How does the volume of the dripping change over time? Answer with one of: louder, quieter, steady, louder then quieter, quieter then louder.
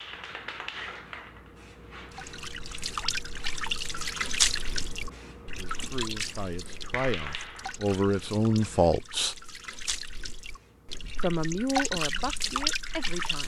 quieter then louder.